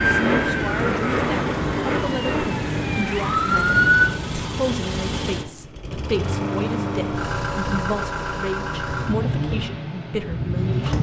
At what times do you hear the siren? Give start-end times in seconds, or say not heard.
0.0-4.2.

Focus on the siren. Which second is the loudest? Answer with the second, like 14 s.
4 s.